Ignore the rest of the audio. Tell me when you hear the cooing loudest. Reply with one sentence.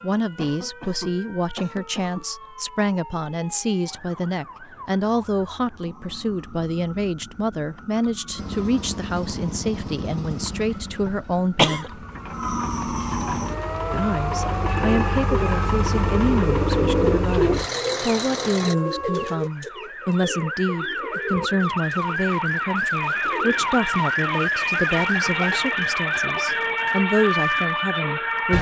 The loudest moment of the cooing is at 17 seconds.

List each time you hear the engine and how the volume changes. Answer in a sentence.
You can hear the engine from 8.3 to 18.8 s, getting quieter then louder.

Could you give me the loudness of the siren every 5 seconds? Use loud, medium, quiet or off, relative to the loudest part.
quiet, quiet, medium, medium, loud, loud.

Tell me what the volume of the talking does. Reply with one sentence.
The loudness of the talking stays about the same.